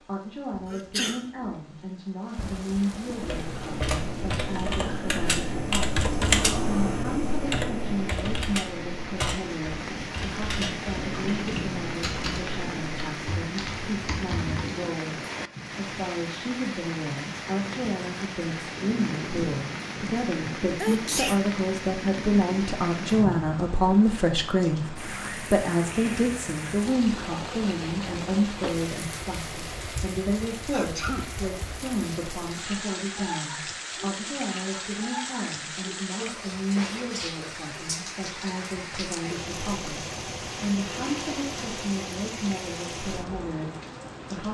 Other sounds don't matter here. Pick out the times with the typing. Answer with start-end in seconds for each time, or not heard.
3.1-14.6.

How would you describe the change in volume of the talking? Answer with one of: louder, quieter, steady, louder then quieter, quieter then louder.
louder then quieter.